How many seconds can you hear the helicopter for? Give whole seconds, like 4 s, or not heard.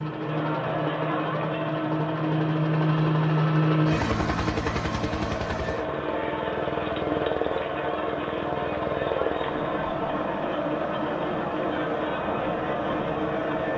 14 s.